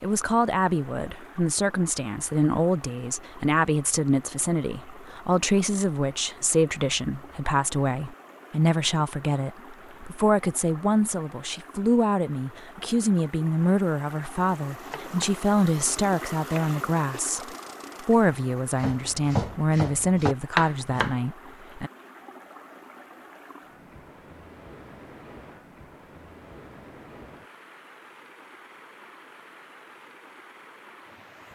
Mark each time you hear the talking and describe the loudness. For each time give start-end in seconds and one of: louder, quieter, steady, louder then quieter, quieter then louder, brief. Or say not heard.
0.0-21.9 steady.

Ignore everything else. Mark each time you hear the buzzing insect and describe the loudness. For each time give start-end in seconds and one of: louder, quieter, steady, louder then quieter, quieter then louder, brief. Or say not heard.
not heard.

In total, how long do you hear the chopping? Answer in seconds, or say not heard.
6 s.